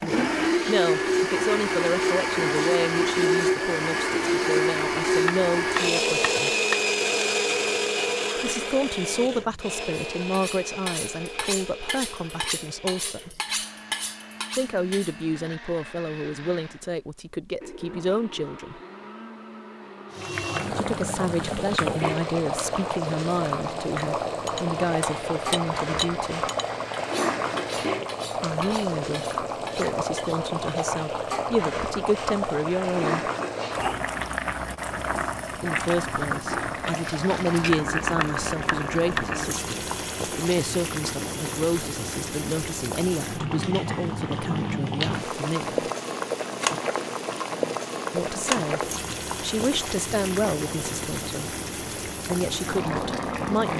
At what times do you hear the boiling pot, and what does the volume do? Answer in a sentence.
The boiling pot can be heard from 20.1 to 53.7 s, at a steady volume.